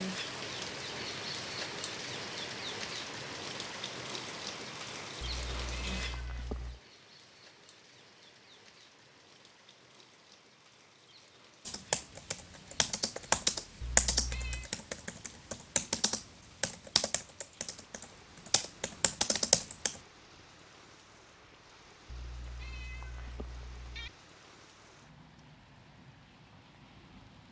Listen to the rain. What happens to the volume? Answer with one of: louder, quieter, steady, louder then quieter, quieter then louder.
quieter.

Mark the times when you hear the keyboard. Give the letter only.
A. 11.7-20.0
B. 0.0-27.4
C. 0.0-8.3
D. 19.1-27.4
A.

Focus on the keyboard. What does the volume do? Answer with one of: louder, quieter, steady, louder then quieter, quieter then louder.
quieter then louder.